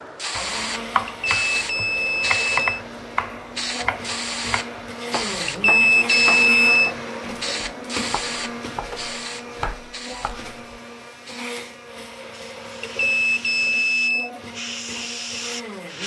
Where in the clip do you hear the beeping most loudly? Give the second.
6 s.